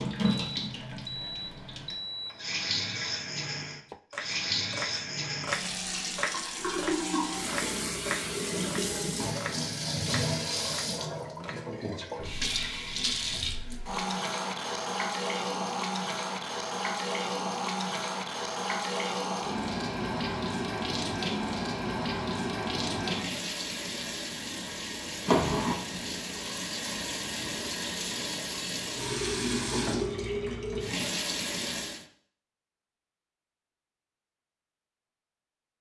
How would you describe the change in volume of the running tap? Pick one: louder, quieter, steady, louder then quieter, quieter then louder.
steady.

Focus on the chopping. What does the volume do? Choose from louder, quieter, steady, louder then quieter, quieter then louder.
quieter.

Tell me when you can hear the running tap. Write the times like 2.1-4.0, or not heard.
0.0-32.0.